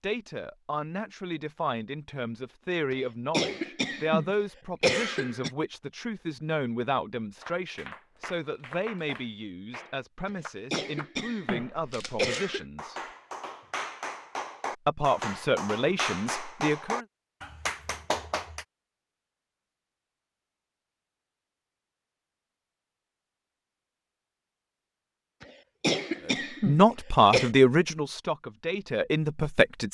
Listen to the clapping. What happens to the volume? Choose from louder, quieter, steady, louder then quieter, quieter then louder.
louder.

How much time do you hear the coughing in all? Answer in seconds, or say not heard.
7 s.